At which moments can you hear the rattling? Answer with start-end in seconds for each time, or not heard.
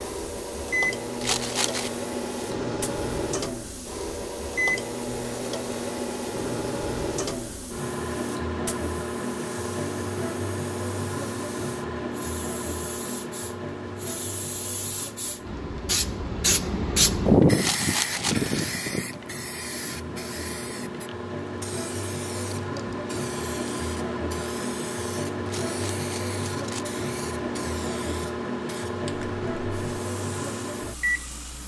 1.2-1.9, 17.6-18.6, 25.4-26.9.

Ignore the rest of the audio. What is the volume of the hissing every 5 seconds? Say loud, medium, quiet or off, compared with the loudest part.
quiet, quiet, quiet, loud, quiet, quiet, quiet.